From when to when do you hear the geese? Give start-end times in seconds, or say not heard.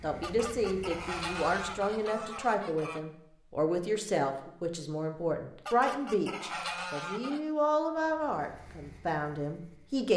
0.2-3.0, 5.7-7.4.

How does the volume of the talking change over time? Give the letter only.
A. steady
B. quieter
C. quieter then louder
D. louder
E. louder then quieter
A.